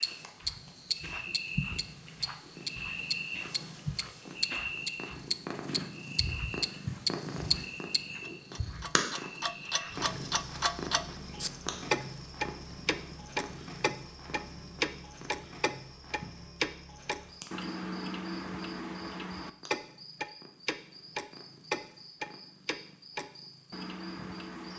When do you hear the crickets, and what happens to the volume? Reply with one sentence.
You can hear the crickets from 0.0 to 24.7 s, getting quieter.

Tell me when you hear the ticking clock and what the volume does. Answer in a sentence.
You can hear the ticking clock from 0.0 to 24.7 s, at a steady volume.